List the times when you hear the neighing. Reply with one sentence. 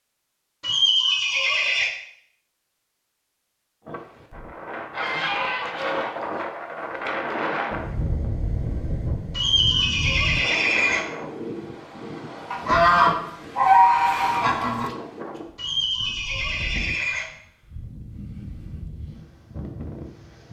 The neighing can be heard from 0.6 to 1.9 s, from 9.3 to 11.0 s and from 15.6 to 17.2 s.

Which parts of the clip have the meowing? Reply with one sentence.
The meowing can't be heard in this clip.